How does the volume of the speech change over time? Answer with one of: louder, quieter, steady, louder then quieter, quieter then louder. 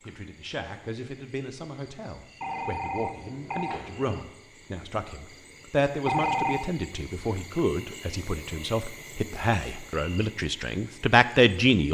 louder.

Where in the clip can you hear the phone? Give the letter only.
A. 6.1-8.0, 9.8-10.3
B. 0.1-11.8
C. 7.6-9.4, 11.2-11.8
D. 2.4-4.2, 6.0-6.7
D.